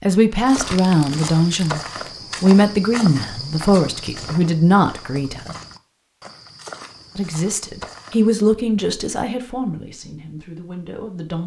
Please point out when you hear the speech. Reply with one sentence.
You can hear the speech from 0.0 to 5.5 s and from 7.2 to 11.4 s.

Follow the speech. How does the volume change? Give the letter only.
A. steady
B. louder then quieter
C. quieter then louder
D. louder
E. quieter
E.